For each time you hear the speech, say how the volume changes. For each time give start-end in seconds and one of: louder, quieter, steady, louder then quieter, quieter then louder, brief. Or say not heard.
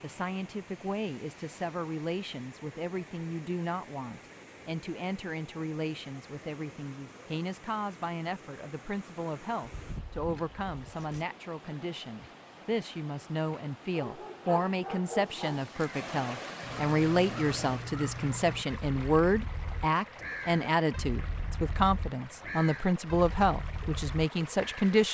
0.0-25.0 louder.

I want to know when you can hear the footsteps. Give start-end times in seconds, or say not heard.
not heard.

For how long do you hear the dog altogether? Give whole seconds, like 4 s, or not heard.
2 s.